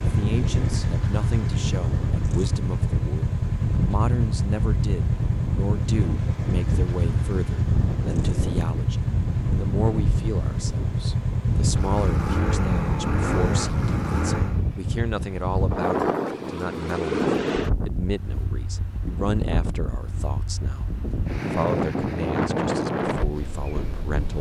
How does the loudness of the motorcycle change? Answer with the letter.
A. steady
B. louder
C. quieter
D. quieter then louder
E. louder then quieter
A.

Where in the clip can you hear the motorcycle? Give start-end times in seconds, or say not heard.
0.0-14.6.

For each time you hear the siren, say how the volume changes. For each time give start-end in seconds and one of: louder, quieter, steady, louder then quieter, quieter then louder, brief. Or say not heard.
not heard.